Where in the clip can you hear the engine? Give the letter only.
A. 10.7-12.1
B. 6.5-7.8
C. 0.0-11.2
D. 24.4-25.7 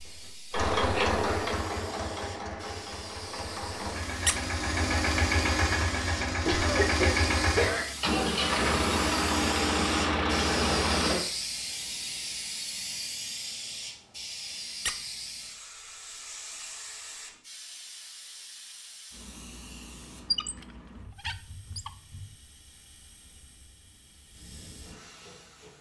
C.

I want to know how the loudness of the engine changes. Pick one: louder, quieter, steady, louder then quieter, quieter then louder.
quieter then louder.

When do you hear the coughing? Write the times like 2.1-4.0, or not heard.
6.5-7.8.